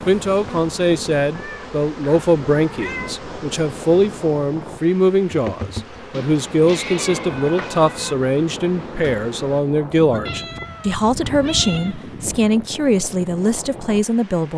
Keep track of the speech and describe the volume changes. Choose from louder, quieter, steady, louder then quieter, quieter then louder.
steady.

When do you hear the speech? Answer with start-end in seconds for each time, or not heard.
0.1-14.5.